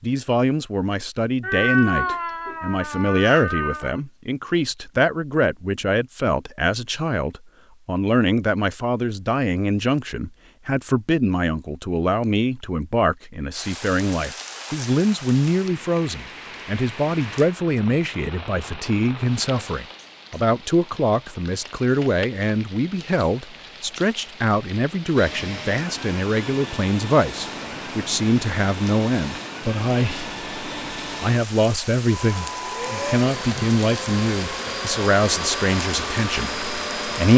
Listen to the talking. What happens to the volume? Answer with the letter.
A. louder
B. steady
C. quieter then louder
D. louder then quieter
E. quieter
B.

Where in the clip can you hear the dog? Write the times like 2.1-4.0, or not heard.
not heard.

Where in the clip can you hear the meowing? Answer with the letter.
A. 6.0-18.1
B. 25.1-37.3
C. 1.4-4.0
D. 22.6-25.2
C.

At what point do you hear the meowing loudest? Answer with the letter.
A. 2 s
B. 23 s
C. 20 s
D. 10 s
A.